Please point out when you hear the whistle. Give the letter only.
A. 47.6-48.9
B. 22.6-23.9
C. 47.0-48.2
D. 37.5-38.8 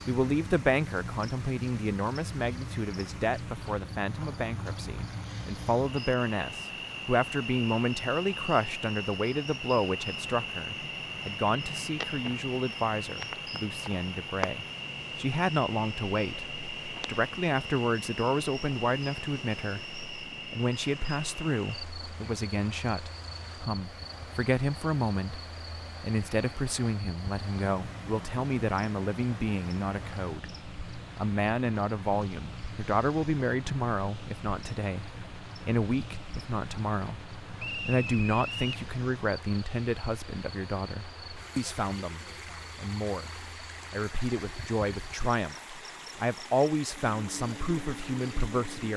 D.